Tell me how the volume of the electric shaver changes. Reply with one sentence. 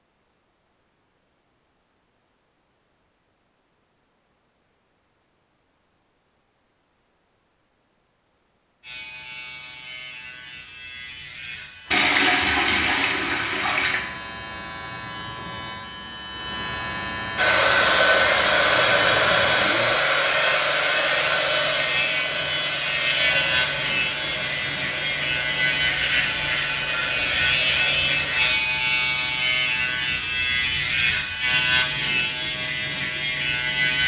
The volume of the electric shaver goes up.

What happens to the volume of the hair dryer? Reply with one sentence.
The loudness of the hair dryer goes down.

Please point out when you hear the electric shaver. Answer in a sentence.
You can hear the electric shaver from 8.8 to 34.0 s.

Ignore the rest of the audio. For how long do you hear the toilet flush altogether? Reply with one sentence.
The toilet flush can be heard for 2 seconds in total.